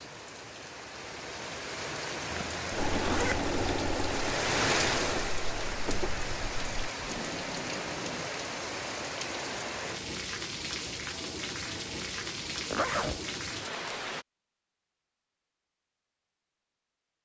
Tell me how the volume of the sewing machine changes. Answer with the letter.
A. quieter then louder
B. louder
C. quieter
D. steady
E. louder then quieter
C.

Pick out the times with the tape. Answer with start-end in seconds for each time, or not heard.
7.0-8.3.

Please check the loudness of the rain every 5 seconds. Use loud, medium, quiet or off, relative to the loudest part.
loud, loud, loud, off.